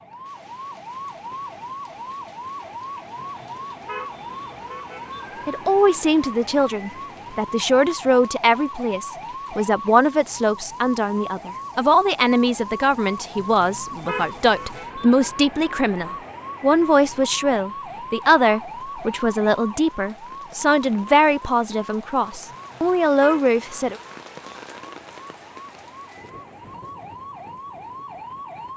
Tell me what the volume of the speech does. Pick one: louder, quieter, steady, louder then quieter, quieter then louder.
steady.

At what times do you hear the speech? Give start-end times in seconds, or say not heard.
5.5-24.0.